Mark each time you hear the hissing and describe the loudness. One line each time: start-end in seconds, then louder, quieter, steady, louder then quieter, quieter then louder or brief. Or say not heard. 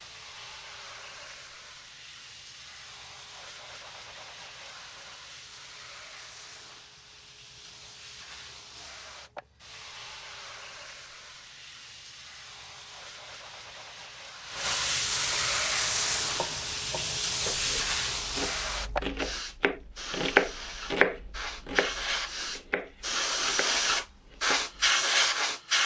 0.0-25.8 louder.